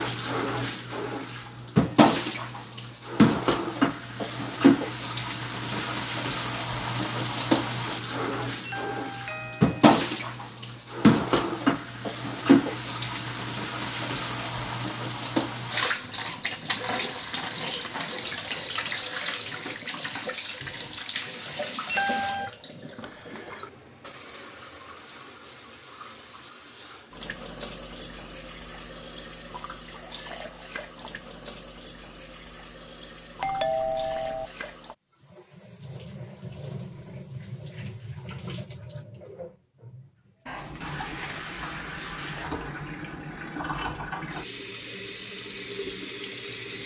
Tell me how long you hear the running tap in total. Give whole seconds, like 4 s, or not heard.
47 s.